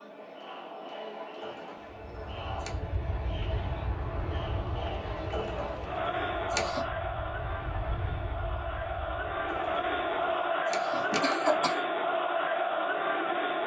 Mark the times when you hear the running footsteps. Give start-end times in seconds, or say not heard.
not heard.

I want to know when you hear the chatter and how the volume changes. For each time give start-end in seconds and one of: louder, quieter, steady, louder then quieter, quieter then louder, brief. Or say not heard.
0.0-13.6 louder.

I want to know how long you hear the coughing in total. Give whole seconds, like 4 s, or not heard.
5 s.